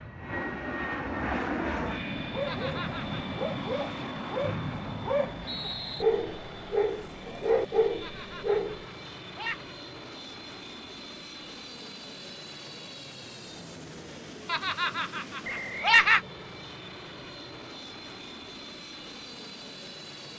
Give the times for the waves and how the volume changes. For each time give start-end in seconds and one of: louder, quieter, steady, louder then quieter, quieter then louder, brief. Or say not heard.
not heard.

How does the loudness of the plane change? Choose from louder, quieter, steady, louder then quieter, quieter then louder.
quieter.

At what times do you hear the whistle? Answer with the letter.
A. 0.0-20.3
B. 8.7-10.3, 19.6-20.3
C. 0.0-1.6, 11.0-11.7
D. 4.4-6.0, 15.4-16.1
D.